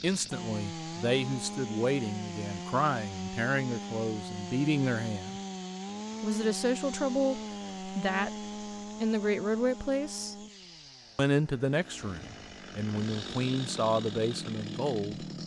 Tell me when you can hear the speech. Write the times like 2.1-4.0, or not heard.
0.0-5.4, 6.2-10.3, 11.2-15.2.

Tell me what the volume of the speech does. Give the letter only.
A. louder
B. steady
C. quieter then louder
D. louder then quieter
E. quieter
B.